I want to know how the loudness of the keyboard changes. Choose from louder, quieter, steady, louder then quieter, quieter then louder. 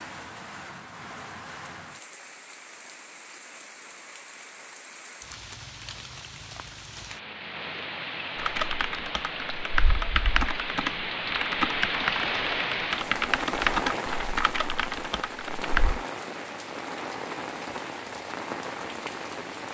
louder then quieter.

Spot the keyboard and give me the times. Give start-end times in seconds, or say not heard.
8.3-16.0.